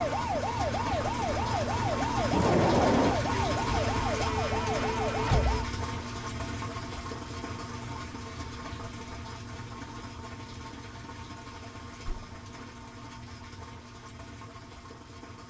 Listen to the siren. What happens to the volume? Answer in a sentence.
The volume of the siren stays about the same.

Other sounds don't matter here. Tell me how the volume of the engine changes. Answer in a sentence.
The loudness of the engine goes down.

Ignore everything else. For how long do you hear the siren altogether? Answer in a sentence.
You can hear the siren for 6 seconds altogether.